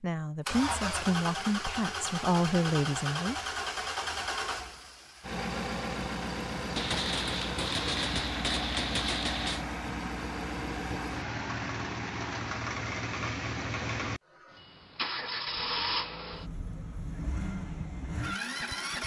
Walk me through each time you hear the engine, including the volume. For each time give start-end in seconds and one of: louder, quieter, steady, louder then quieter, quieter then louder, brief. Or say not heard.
0.5-19.0 steady.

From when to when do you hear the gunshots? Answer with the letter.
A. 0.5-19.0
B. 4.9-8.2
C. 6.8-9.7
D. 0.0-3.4
C.